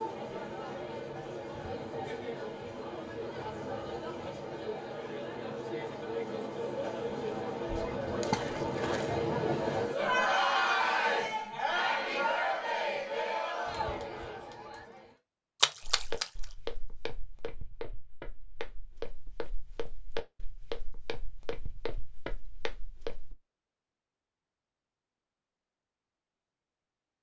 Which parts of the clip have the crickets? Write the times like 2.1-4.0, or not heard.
not heard.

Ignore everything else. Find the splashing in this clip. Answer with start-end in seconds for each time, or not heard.
8.2-9.2, 15.6-16.3.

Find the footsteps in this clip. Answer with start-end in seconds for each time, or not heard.
15.8-23.4.